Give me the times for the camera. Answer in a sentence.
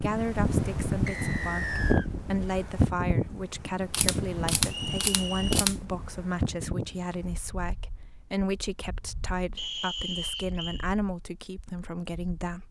You can hear the camera from 3.9 to 5.8 s.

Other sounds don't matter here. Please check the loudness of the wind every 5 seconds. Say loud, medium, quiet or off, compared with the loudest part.
loud, medium, quiet.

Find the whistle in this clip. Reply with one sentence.
You can hear the whistle from 1.1 to 2.1 s, from 4.7 to 5.7 s and from 9.6 to 10.8 s.